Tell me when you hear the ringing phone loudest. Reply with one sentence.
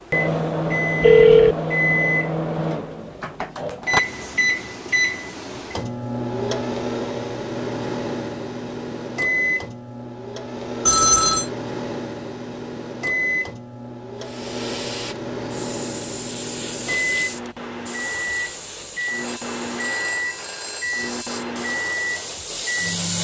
The volume of the ringing phone peaks at 1 second.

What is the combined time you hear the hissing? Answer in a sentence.
You can hear the hissing for 9 seconds altogether.